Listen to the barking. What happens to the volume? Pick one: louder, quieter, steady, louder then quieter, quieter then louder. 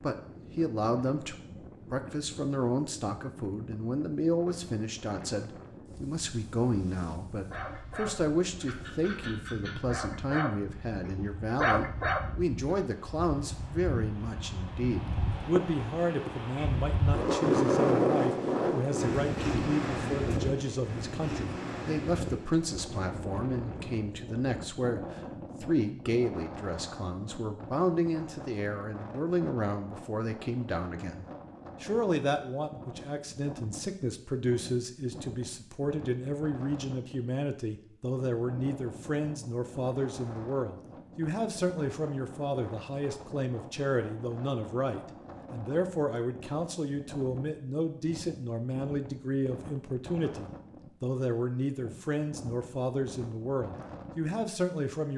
louder.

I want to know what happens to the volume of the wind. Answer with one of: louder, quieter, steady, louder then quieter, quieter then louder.
louder then quieter.